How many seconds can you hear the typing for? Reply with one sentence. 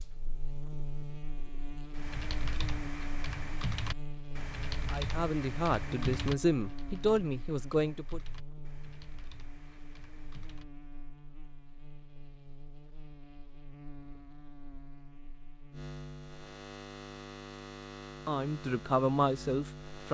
The typing can be heard for 9 seconds in total.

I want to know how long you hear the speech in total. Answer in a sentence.
The speech can be heard for 5 seconds in total.